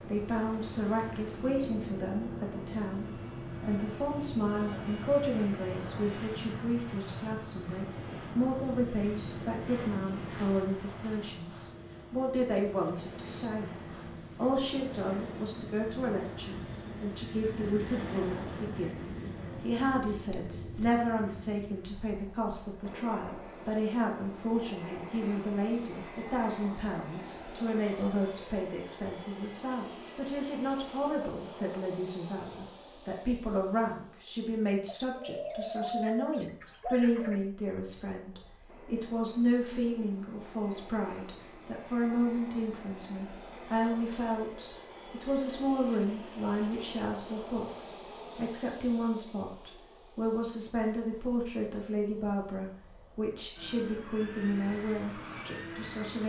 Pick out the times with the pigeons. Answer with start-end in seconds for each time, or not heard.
19.4-21.0, 34.9-37.4.